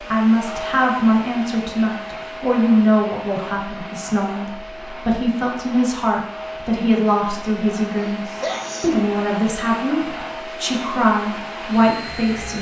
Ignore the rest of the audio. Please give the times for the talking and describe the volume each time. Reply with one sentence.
You can hear the talking from 0.0 to 12.5 s, at a steady volume.